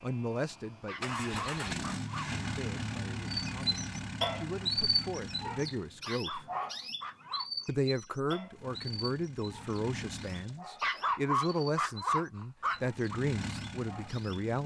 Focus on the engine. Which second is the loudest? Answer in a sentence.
The volume of the engine peaks at 2 seconds.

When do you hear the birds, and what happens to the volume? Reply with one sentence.
The birds can be heard from 3.3 to 14.4 s, getting quieter.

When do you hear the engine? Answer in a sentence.
You can hear the engine from 0.0 to 6.0 s, from 8.5 to 10.6 s and from 12.6 to 14.6 s.